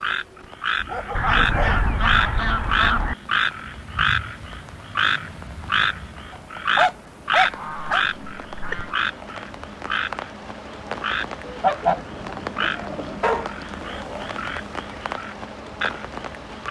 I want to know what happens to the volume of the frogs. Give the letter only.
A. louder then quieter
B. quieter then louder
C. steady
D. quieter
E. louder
D.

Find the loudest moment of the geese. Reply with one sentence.
The loudest moment of the geese is at 12 seconds.